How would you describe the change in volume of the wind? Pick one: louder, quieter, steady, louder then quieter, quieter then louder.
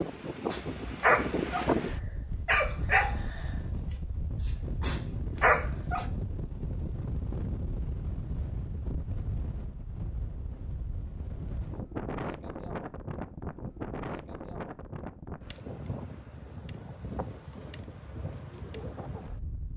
quieter.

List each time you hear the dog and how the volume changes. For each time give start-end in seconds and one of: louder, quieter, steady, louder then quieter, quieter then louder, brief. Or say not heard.
0.5-6.0 quieter then louder.